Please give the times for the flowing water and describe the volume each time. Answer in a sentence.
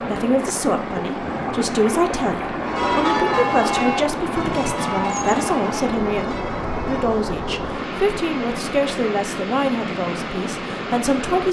You can hear the flowing water from 0.0 to 11.4 s, at a steady volume.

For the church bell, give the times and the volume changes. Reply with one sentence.
The church bell can be heard from 2.6 to 7.2 s, getting quieter.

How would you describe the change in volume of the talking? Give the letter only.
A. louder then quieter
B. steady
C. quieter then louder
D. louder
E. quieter
B.